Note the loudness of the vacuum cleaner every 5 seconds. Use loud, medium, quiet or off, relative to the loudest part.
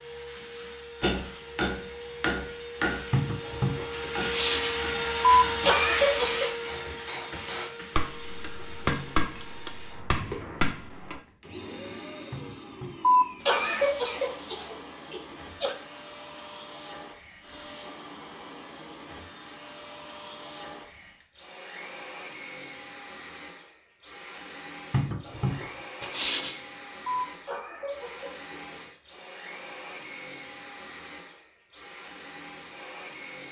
loud, loud, medium, medium, medium, medium, medium.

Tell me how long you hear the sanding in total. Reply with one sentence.
You can hear the sanding for 6 seconds altogether.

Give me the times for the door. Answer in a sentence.
You can't hear the door here.